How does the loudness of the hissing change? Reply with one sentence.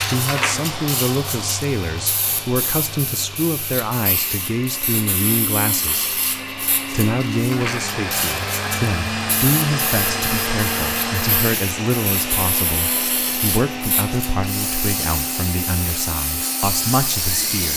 The volume of the hissing stays about the same.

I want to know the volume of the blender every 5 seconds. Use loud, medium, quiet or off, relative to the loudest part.
medium, loud, loud, medium.